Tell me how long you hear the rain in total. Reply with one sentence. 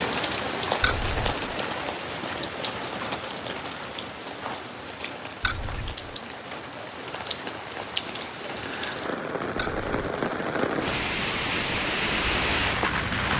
You can hear the rain for 13 seconds altogether.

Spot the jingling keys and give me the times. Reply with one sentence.
You can hear the jingling keys from 0.8 to 1.4 s, from 5.4 to 6.1 s and from 9.6 to 10.1 s.